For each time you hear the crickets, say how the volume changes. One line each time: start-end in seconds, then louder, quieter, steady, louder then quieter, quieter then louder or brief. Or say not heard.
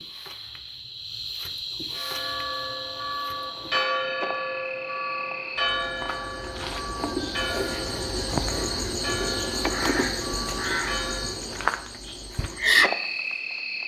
0.0-13.8 louder.